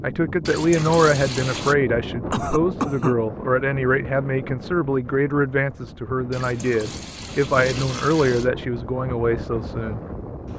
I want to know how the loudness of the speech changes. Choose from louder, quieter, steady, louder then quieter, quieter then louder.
steady.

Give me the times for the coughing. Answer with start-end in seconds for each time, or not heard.
2.3-3.1.